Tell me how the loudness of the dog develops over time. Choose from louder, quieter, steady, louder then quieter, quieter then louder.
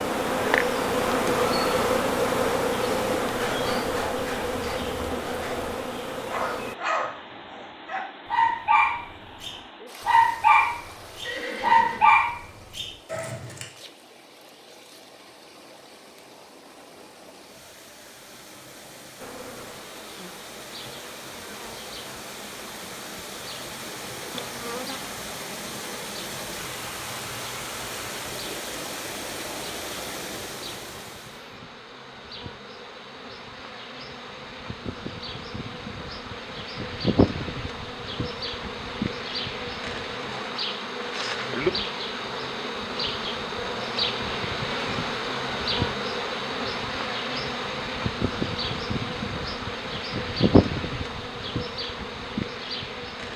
louder.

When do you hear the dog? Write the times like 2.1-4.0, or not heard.
3.2-13.7.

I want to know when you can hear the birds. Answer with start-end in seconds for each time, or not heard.
not heard.